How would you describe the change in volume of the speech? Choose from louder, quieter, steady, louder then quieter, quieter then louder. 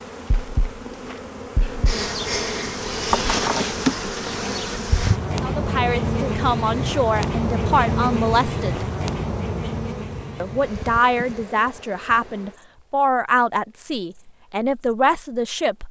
steady.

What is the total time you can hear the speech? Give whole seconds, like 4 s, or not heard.
9 s.